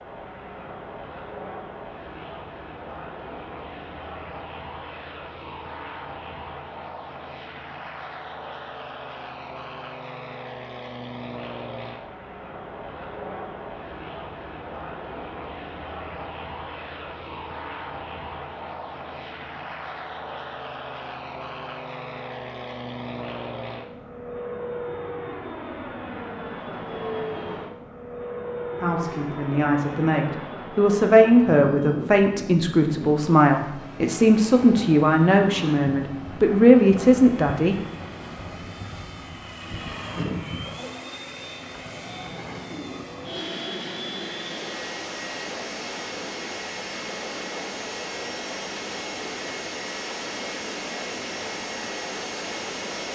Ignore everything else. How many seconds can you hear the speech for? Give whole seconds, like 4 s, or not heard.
9 s.